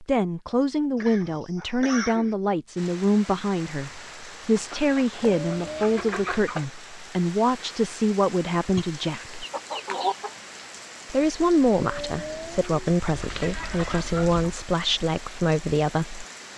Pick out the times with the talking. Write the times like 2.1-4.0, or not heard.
0.0-9.4, 11.1-16.2.